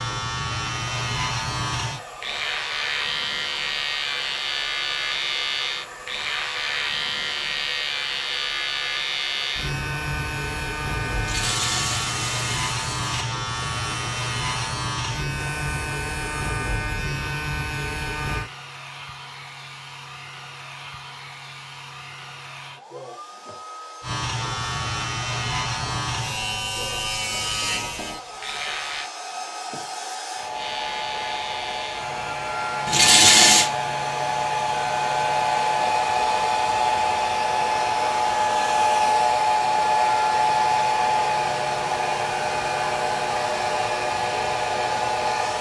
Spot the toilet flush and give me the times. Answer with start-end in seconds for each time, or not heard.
11.2-13.2, 32.9-33.7.